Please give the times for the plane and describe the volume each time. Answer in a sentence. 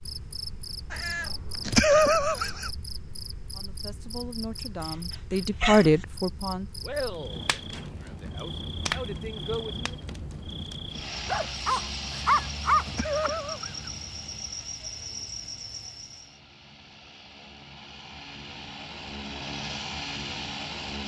You can hear the plane from 10.9 to 21.0 s, getting quieter then louder.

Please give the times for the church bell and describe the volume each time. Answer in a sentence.
You can't hear the church bell here.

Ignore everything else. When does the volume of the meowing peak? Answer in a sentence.
The volume of the meowing peaks at 2 seconds.